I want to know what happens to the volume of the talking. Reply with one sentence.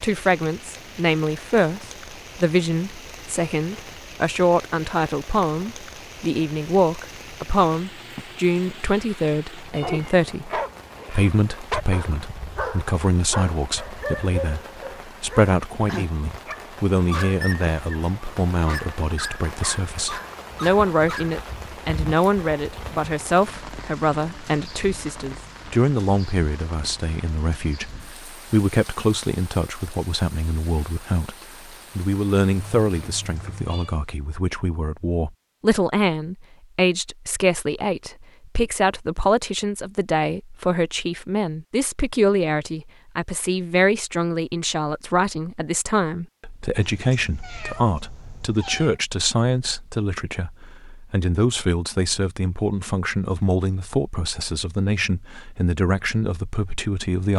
The loudness of the talking stays about the same.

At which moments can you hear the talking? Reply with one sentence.
You can hear the talking from 0.0 to 57.3 s.